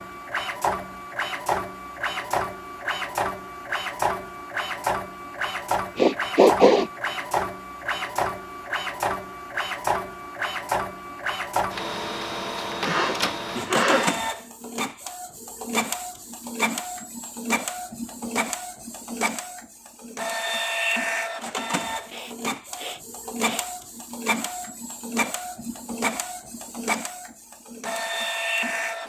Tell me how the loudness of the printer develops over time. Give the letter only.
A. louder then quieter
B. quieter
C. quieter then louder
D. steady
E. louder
D.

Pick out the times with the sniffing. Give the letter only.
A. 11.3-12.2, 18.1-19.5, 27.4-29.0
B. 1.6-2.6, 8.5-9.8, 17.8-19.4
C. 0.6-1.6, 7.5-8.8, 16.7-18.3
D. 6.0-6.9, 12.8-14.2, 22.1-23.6
D.